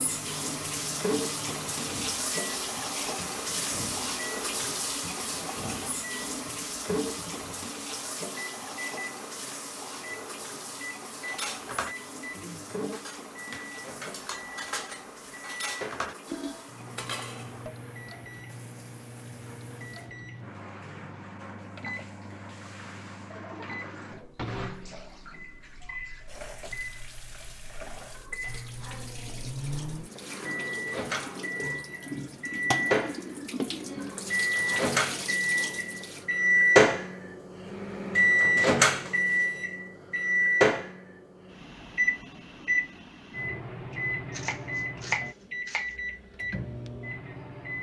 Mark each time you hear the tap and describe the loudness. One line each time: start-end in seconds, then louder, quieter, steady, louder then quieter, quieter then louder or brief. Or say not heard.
0.0-36.2 quieter then louder.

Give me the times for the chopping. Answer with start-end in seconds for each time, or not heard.
44.3-45.9.